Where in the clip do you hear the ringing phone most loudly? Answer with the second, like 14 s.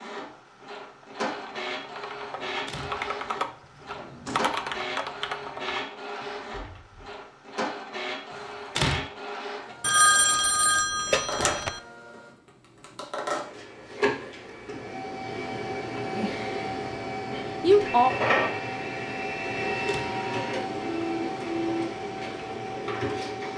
10 s.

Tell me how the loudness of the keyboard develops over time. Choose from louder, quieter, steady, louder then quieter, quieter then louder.
louder then quieter.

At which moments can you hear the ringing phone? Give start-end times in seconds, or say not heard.
9.8-11.8.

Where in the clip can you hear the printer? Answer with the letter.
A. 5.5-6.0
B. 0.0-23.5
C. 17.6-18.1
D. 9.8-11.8
B.